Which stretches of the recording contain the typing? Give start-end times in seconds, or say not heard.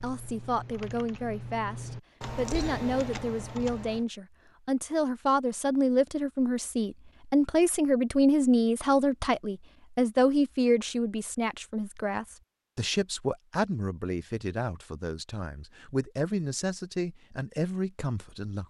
0.0-4.0.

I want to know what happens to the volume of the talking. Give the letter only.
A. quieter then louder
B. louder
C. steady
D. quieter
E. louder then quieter
E.